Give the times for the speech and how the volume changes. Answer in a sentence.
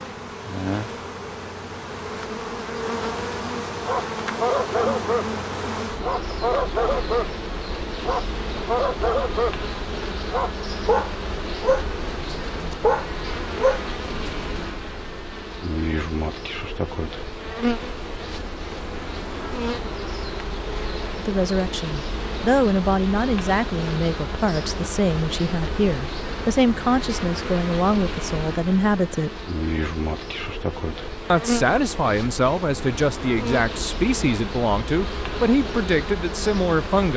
The speech can be heard from 21.1 to 29.4 s, at a steady volume; and from 31.3 to 37.1 s, at a steady volume.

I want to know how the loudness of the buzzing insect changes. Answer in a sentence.
The volume of the buzzing insect stays about the same.